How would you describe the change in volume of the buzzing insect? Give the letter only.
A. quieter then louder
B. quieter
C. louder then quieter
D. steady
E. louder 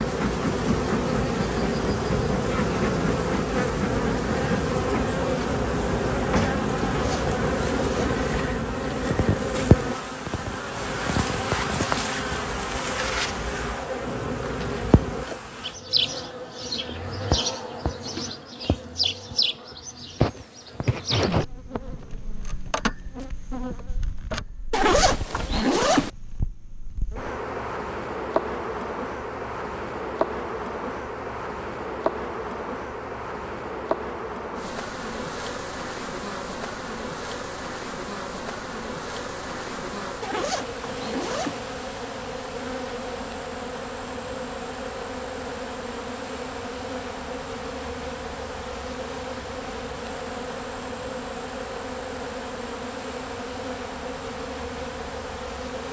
B.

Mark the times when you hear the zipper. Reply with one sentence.
You can hear the zipper from 6.8 to 8.2 s, from 24.7 to 26.1 s and from 40.2 to 41.6 s.